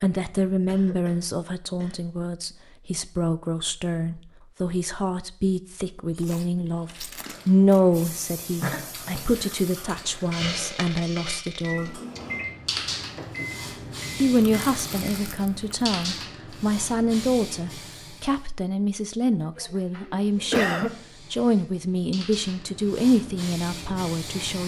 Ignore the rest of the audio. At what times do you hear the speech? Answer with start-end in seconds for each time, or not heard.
0.0-12.0, 14.2-24.6.